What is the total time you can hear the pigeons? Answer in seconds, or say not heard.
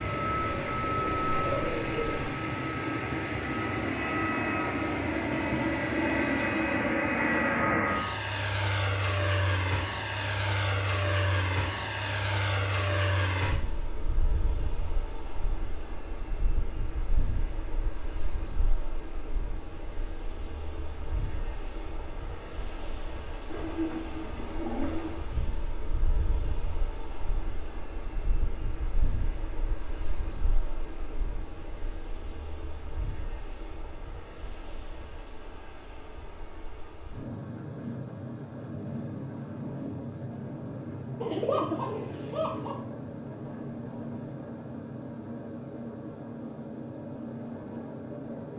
5 s.